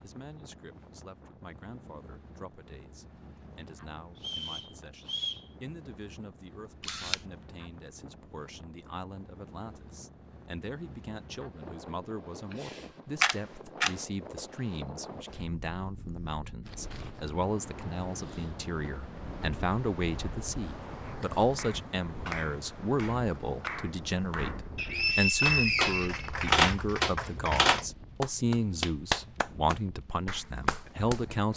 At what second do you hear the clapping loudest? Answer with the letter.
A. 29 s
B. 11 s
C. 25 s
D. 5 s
A.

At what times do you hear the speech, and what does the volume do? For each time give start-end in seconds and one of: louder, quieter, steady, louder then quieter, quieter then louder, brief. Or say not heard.
0.0-31.5 louder.